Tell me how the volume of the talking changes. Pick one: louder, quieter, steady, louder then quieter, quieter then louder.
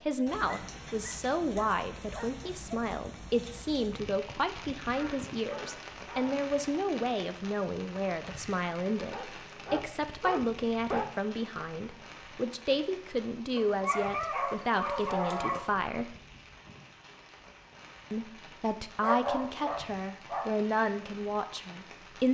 steady.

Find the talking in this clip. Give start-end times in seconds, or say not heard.
0.1-16.1, 18.1-22.2.